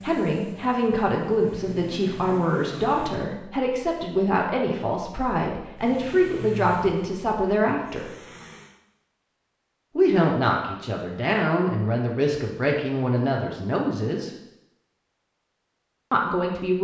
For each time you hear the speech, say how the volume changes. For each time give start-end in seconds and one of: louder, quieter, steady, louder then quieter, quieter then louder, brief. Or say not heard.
0.0-8.1 steady
9.9-14.3 steady
16.1-16.7 brief.